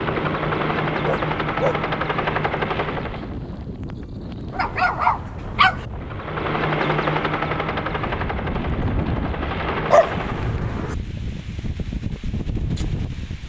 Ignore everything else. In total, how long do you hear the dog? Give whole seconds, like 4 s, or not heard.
3 s.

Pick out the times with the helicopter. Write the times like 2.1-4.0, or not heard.
0.0-3.4, 5.9-10.7.